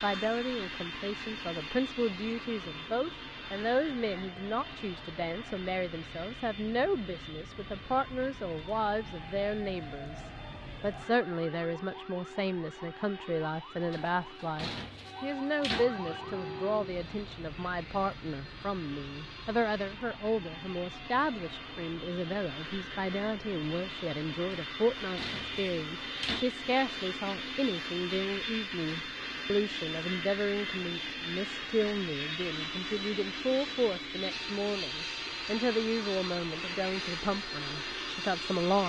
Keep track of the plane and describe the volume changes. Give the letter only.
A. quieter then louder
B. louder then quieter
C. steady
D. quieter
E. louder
A.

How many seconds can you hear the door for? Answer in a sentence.
The door can be heard for 4 seconds in total.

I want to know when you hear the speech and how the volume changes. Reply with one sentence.
You can hear the speech from 0.0 to 38.8 s, at a steady volume.